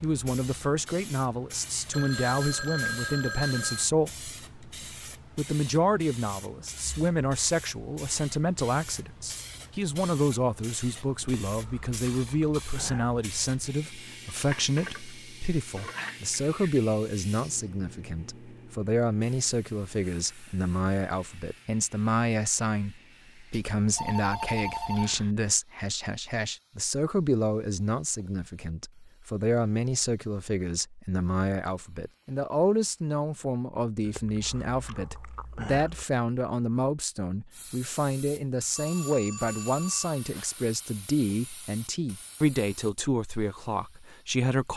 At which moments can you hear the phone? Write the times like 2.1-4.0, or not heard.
1.9-3.9, 23.5-25.4, 38.8-40.7.